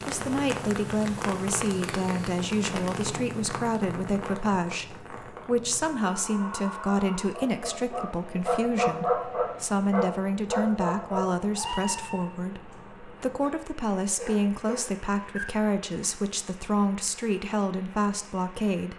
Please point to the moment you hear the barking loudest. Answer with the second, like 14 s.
9 s.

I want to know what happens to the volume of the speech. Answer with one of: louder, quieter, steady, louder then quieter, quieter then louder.
steady.